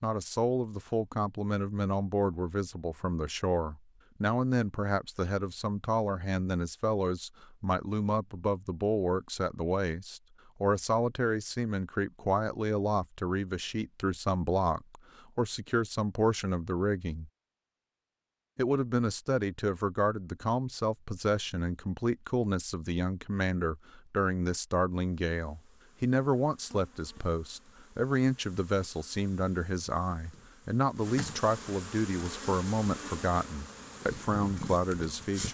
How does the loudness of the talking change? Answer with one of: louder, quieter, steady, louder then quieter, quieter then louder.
steady.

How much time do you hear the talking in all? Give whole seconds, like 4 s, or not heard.
34 s.